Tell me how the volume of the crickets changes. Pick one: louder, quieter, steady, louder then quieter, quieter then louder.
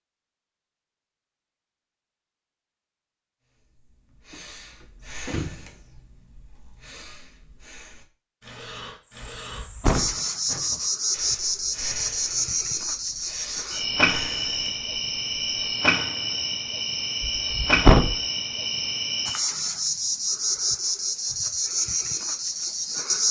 steady.